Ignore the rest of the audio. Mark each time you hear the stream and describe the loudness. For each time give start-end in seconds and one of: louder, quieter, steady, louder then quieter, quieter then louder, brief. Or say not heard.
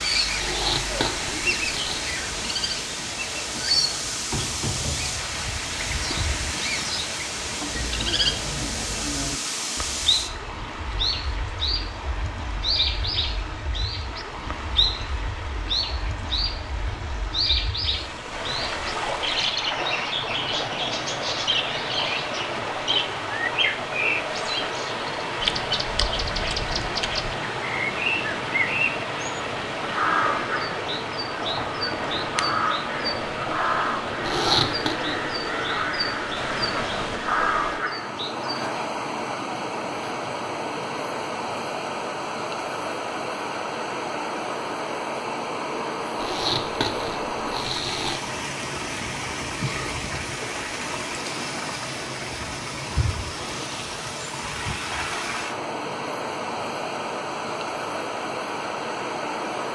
0.0-59.7 steady.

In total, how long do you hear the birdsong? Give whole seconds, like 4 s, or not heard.
39 s.